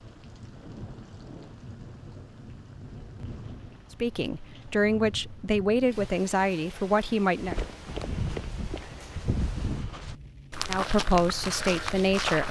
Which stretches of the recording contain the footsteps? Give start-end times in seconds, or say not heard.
7.3-12.4.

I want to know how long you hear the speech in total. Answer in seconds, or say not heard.
5 s.